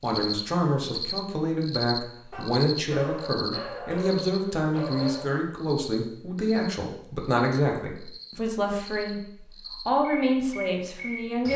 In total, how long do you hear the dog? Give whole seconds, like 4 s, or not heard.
3 s.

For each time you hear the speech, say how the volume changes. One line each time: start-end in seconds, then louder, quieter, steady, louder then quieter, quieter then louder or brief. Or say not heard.
0.0-11.5 steady.